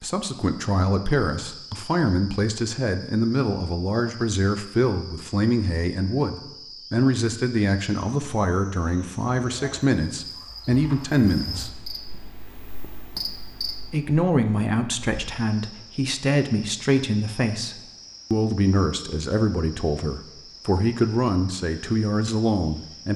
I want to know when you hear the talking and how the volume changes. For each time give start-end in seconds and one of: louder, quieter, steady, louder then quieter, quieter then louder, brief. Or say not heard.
0.0-11.7 steady
13.9-23.1 steady.